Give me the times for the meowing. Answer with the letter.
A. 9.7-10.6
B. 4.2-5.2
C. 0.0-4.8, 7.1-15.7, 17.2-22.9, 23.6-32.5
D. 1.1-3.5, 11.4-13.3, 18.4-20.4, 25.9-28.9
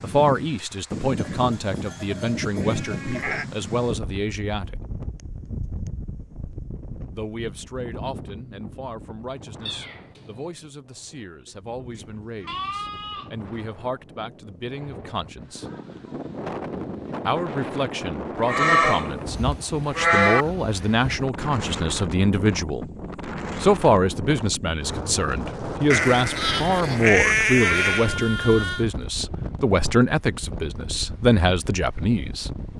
A.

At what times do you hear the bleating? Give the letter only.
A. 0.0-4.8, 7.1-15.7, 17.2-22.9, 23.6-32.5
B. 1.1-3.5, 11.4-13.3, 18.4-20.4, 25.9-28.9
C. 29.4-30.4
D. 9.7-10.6
B.